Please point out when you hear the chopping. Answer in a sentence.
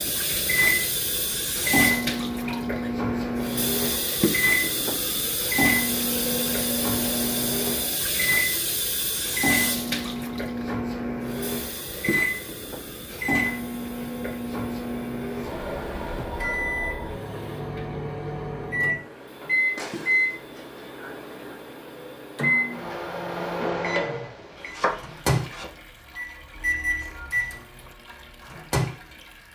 You can hear the chopping from 24.6 to 25.7 s.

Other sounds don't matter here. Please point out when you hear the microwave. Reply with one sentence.
The microwave can be heard from 0.0 to 29.2 s.